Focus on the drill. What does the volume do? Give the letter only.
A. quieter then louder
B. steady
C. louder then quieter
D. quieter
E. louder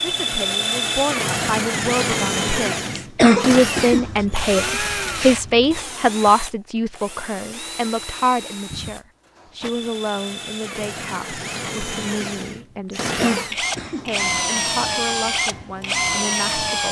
A.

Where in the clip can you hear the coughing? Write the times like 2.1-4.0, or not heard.
3.0-4.1, 13.2-14.8.